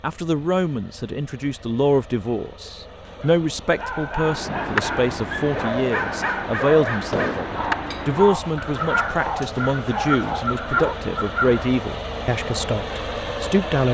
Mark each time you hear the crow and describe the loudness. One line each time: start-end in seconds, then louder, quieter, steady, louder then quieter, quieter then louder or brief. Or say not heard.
4.2-11.8 steady.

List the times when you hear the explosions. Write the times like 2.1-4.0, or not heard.
7.1-7.5.